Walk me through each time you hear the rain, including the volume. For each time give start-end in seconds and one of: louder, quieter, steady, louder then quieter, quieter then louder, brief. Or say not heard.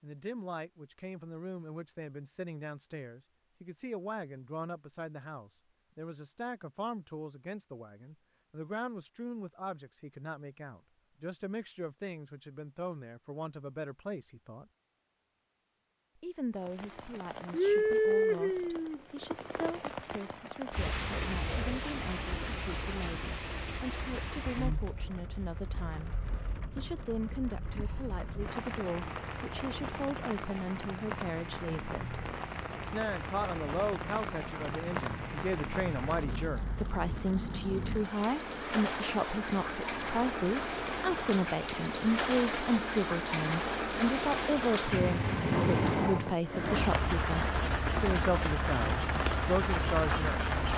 16.6-50.7 quieter then louder.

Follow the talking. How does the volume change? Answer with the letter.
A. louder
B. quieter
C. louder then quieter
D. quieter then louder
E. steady
A.